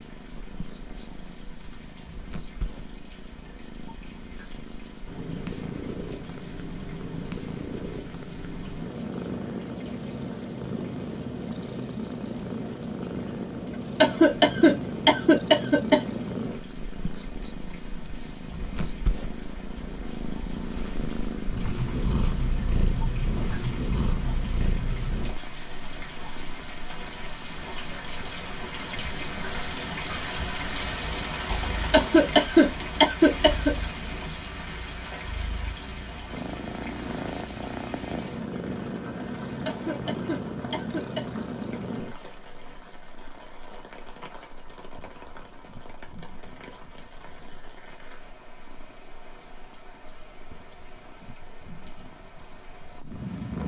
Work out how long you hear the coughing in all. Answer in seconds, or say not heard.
7 s.